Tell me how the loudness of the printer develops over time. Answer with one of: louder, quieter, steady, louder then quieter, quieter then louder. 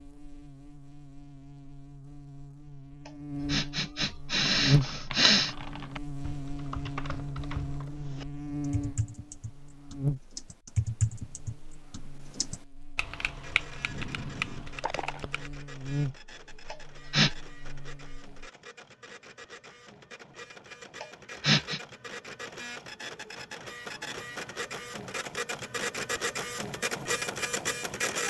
louder.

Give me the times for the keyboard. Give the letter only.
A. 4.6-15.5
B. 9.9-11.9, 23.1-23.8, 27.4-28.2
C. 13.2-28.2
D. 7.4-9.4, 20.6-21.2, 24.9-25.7
A.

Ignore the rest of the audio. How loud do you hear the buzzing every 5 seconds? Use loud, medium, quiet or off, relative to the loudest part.
loud, loud, medium, medium, off, off.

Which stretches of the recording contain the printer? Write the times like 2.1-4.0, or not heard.
13.2-28.2.